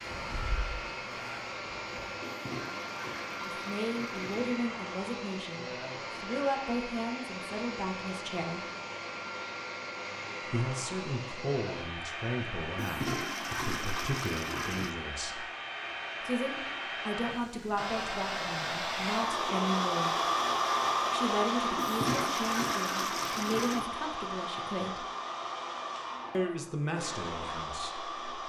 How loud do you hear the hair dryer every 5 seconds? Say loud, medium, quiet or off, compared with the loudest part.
medium, medium, medium, loud, loud, medium.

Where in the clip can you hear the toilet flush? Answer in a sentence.
You can hear the toilet flush from 2.2 to 4.6 s, from 12.8 to 14.9 s and from 21.8 to 23.9 s.